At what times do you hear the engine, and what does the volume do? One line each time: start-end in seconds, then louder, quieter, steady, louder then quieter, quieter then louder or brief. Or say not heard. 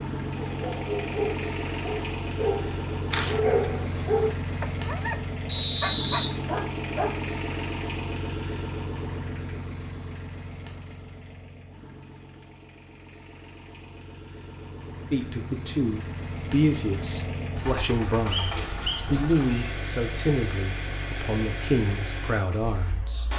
0.0-23.3 quieter then louder.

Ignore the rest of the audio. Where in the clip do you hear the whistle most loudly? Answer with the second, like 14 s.
6 s.